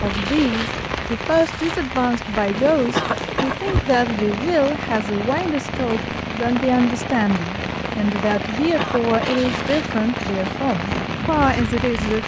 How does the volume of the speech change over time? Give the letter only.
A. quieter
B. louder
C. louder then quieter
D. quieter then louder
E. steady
E.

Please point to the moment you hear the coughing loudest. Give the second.
3 s.